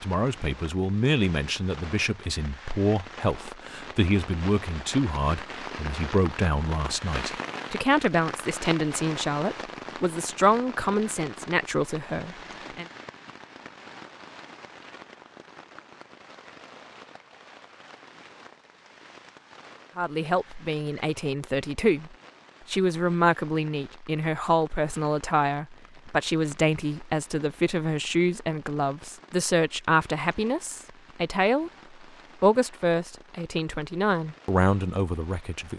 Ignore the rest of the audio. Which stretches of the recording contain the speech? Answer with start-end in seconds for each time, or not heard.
0.0-12.8, 19.9-31.7, 32.4-35.7.